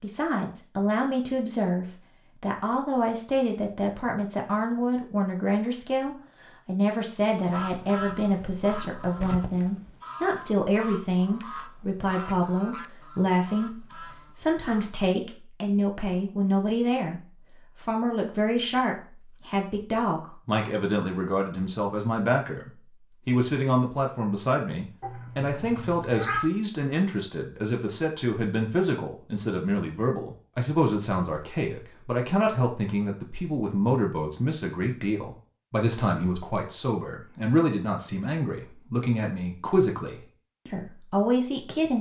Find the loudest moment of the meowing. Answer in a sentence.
The loudest moment of the meowing is at 26 seconds.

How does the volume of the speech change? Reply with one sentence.
The volume of the speech stays about the same.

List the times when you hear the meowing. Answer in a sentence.
You can hear the meowing from 25.0 to 26.4 s.